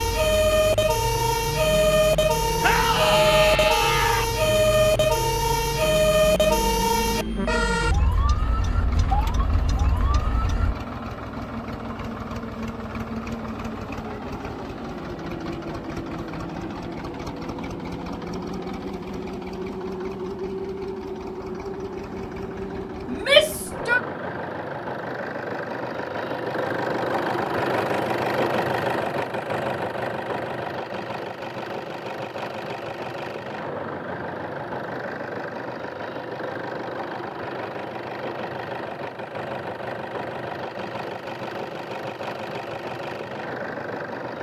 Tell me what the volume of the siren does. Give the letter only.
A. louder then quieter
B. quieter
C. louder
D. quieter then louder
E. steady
B.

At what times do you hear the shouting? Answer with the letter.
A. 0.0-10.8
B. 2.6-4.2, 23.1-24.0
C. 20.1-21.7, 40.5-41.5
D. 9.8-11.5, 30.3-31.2
B.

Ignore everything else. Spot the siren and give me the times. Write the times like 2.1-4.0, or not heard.
0.0-10.8.